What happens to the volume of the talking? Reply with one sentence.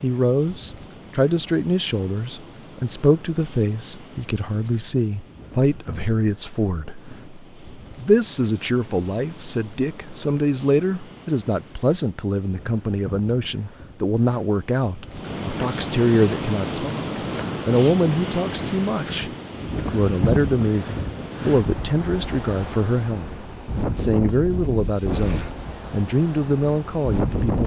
The volume of the talking stays about the same.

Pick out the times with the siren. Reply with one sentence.
The siren can't be heard in this clip.